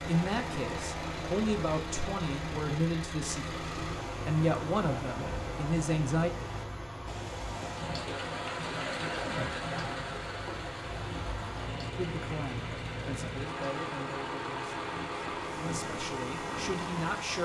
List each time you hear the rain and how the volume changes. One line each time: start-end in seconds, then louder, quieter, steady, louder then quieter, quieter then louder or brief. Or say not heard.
0.0-17.4 louder then quieter.